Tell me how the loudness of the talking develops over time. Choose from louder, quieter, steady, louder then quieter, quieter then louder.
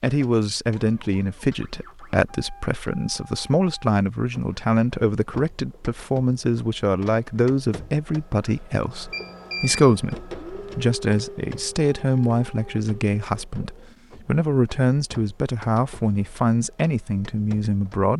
steady.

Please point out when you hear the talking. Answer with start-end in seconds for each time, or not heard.
0.0-18.1.